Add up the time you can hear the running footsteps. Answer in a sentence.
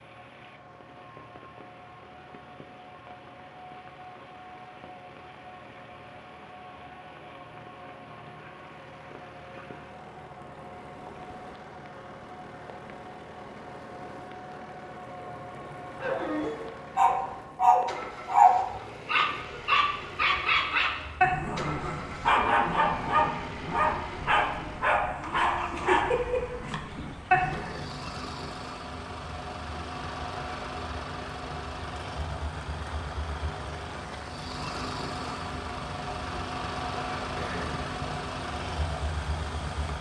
You can't hear the running footsteps here.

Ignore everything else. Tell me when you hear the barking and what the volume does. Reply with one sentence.
The barking can be heard from 16.0 to 27.7 s, getting quieter.